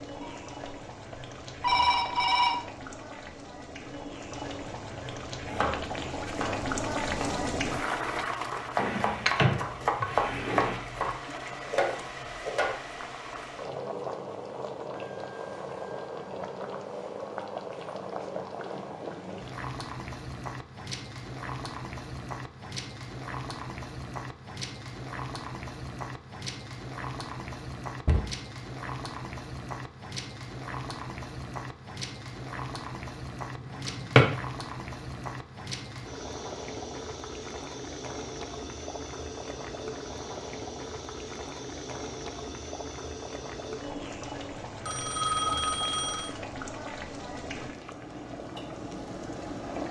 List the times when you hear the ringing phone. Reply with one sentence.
You can hear the ringing phone from 0.2 to 2.6 s and from 44.9 to 46.3 s.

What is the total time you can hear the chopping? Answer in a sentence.
You can hear the chopping for 8 seconds altogether.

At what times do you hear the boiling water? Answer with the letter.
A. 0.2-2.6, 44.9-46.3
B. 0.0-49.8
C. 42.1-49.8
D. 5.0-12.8
B.